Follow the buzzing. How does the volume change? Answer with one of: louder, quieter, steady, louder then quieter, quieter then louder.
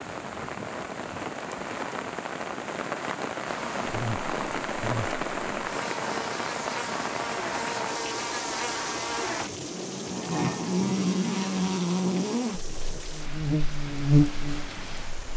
louder.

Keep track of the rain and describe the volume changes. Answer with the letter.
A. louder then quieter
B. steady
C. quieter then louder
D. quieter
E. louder
D.